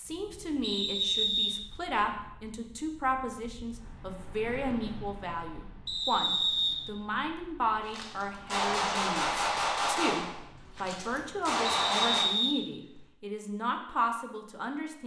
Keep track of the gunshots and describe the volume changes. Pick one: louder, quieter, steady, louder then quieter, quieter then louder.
quieter then louder.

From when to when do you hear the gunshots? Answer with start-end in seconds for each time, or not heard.
7.8-12.3.